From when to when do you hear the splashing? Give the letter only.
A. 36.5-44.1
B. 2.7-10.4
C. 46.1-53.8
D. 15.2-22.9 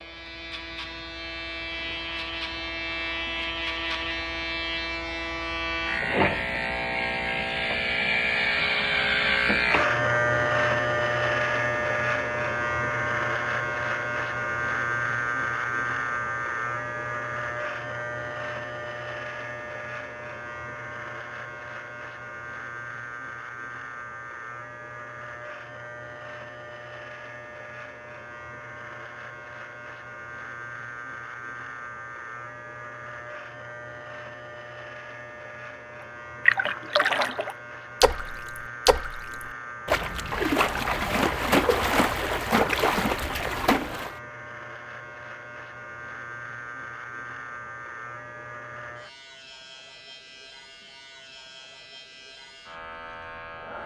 A.